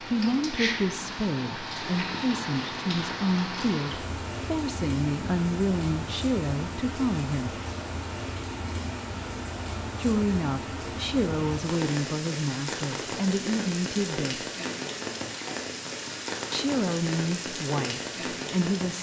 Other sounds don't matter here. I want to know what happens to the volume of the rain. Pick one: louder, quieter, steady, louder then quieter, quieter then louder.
steady.